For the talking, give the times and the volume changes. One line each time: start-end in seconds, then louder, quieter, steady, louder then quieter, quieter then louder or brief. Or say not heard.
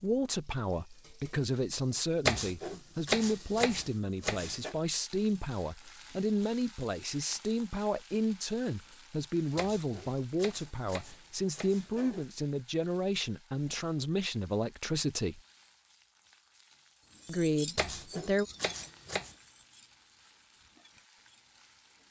0.0-15.4 steady
17.2-18.4 brief.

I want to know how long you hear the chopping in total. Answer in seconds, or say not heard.
7 s.